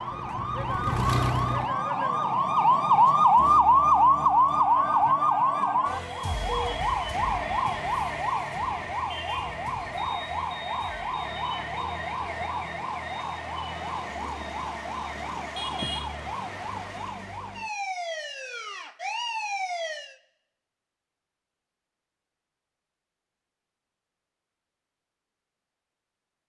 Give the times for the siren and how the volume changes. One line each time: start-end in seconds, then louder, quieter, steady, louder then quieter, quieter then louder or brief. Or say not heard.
0.0-20.1 quieter.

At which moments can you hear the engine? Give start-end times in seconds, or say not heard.
0.0-1.7.